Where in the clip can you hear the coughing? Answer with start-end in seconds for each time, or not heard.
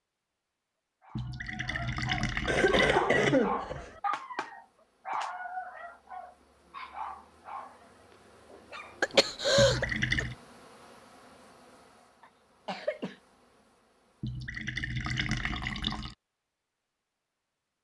2.5-3.9, 9.0-10.2, 12.2-13.2.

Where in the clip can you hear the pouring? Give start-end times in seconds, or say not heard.
1.1-3.0, 9.6-10.3, 14.2-16.1.